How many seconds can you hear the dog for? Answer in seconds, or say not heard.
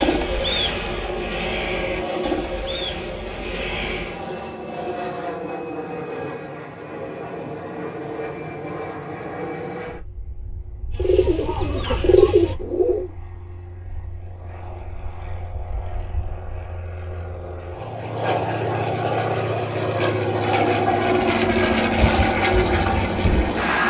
not heard.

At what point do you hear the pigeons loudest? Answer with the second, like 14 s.
12 s.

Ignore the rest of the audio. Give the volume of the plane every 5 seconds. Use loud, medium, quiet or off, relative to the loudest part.
medium, medium, quiet, medium, loud.